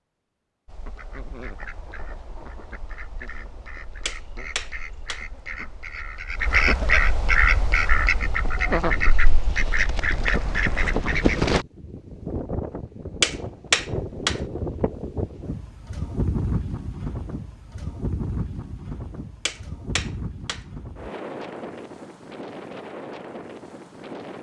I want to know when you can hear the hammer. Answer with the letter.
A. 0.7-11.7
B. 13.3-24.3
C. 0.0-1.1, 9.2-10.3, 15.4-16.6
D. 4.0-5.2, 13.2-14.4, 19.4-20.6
D.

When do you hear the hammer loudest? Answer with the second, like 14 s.
14 s.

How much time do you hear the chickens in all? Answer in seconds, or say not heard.
11 s.